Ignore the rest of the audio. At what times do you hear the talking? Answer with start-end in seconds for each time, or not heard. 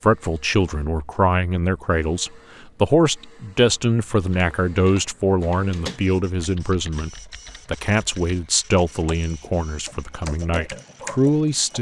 0.0-11.7.